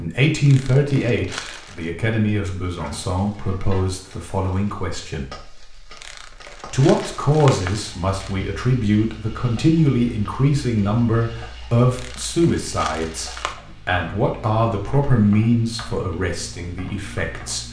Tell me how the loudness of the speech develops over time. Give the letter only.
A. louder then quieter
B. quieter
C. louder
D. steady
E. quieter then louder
D.